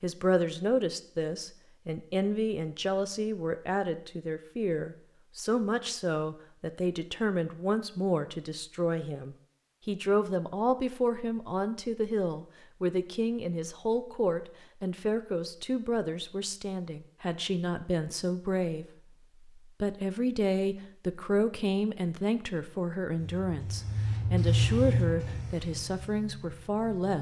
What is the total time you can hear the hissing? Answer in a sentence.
The hissing can be heard for 4 seconds in total.